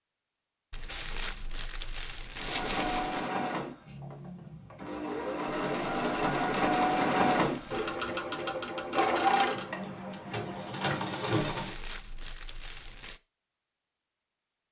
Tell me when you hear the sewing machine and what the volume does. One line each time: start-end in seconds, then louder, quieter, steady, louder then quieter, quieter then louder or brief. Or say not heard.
2.4-11.8 louder then quieter.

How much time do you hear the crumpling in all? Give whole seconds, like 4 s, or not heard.
7 s.